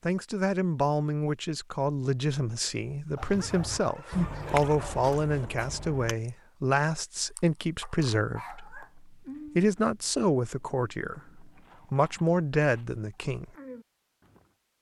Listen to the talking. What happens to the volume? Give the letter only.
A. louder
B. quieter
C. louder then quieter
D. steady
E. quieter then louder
D.